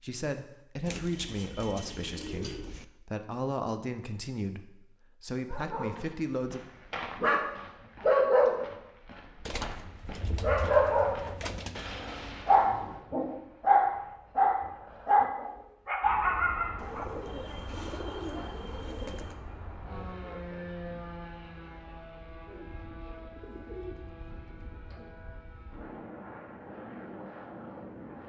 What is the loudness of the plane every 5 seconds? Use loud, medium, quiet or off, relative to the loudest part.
off, off, off, loud, loud, loud.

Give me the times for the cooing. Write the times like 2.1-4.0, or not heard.
0.8-2.9, 9.4-11.9, 16.8-19.4, 22.5-25.1.